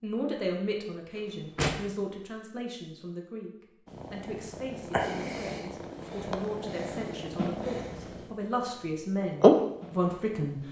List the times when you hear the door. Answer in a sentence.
You can hear the door from 1.1 to 1.9 s.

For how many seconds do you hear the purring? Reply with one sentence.
You can hear the purring for 5 seconds altogether.